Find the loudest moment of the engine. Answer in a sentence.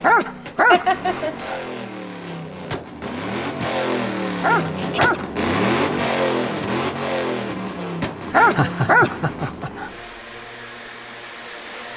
The volume of the engine peaks at 6 seconds.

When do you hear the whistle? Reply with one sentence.
The whistle can't be heard in this clip.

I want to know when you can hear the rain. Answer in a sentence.
The rain can't be heard in this clip.